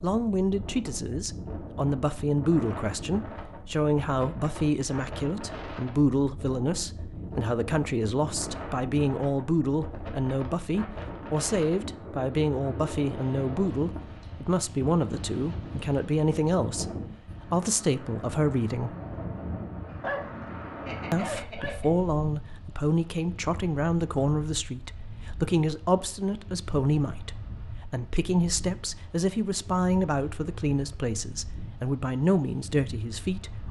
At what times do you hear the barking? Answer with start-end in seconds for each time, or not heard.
19.9-21.9.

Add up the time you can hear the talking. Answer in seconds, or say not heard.
31 s.